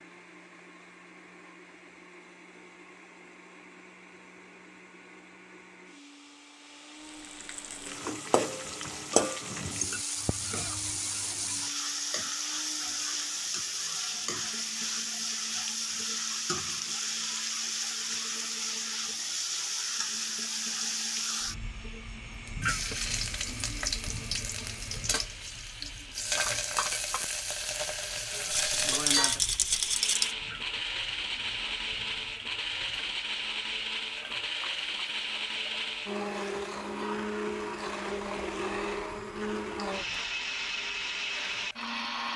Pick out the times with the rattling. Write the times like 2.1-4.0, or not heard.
28.5-30.4.